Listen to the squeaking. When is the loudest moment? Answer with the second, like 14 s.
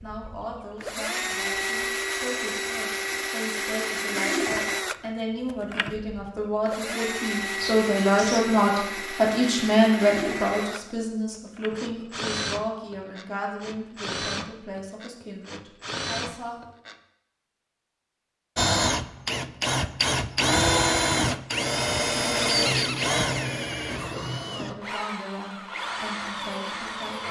23 s.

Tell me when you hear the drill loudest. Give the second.
21 s.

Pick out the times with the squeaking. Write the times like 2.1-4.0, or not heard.
7.5-8.5, 22.4-23.1.